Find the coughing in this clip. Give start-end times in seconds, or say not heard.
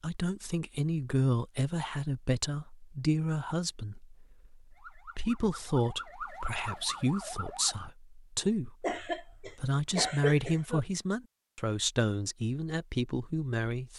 8.8-10.8.